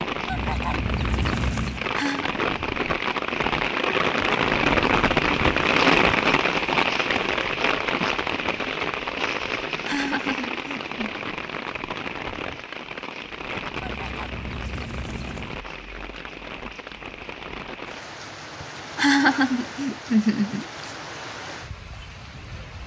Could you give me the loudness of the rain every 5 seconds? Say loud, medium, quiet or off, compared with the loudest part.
loud, loud, medium, quiet, quiet.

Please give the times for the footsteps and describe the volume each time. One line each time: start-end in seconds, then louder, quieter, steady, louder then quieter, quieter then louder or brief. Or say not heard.
not heard.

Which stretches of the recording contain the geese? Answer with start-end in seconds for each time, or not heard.
0.2-1.9, 13.8-15.6.